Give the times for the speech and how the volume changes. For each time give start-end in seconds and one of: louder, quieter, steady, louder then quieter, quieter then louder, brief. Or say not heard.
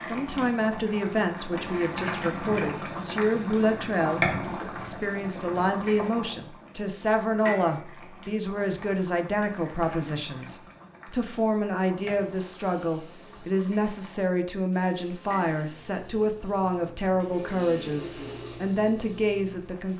0.0-19.9 steady.